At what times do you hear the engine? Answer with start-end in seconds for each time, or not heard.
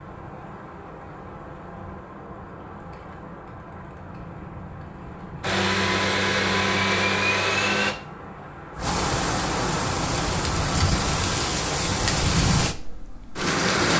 5.4-8.0.